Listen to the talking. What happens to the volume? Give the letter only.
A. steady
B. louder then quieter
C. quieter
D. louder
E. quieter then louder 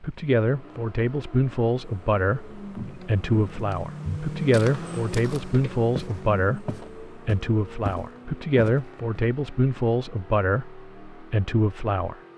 A.